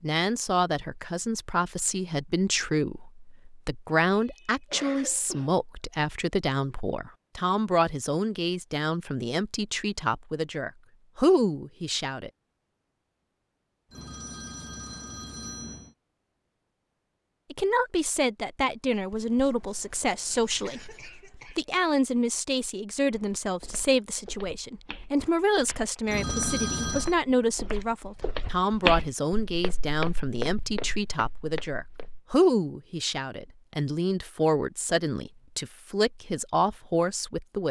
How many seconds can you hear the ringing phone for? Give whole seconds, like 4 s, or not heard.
3 s.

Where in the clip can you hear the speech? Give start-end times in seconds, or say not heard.
0.0-12.3, 17.5-37.6.